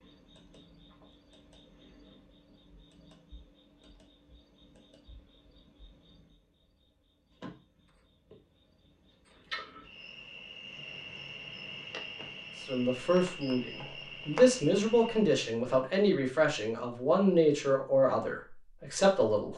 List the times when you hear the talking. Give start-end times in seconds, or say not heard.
12.6-19.5.